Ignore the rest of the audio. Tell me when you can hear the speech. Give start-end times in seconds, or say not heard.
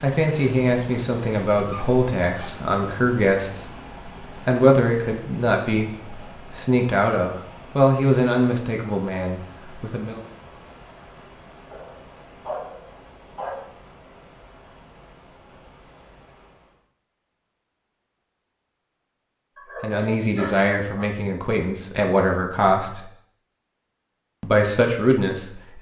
0.0-10.2, 19.8-23.1, 24.4-25.7.